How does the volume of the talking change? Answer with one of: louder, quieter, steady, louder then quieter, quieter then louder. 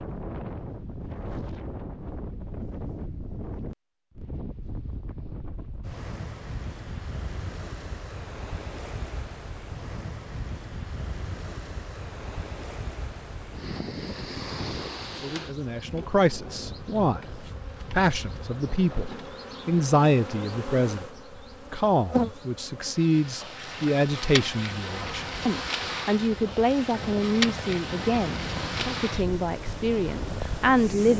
steady.